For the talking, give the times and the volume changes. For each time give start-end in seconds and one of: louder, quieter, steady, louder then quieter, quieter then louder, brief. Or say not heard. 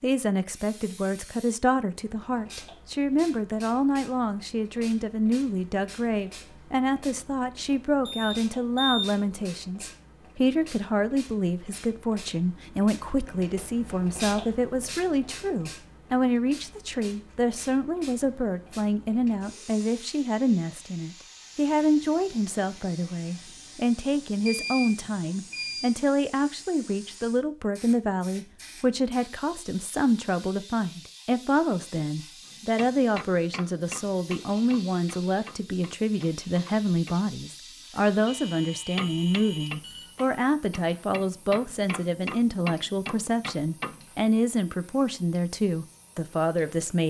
0.0-47.0 steady.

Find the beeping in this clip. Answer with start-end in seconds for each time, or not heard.
8.1-9.5, 24.4-25.9, 38.2-40.2.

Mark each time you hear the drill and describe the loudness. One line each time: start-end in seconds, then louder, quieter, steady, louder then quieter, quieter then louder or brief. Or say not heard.
not heard.